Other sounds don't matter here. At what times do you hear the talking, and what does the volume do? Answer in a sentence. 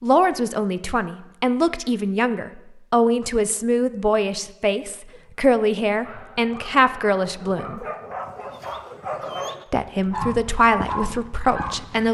You can hear the talking from 0.0 to 7.8 s, at a steady volume; and briefly from 9.7 to 12.0 s.